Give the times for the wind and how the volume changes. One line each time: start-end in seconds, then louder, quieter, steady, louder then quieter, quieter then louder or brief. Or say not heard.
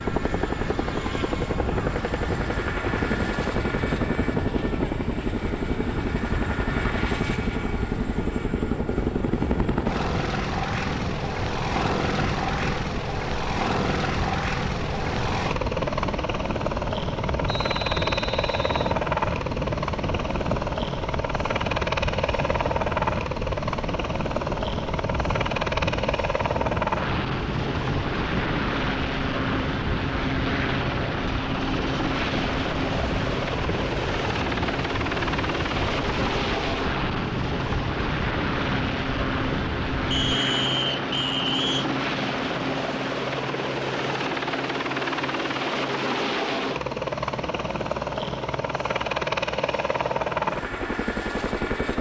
0.0-40.4 steady.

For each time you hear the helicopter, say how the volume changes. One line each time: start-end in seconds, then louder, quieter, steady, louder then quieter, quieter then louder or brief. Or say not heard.
0.0-51.9 steady.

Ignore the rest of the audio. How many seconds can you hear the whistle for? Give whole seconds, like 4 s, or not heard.
3 s.